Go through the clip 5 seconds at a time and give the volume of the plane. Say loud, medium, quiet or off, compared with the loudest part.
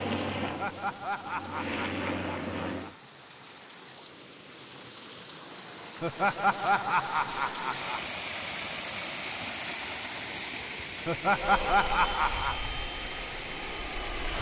loud, off, loud.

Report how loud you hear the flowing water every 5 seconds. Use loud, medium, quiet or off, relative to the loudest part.
medium, loud, loud.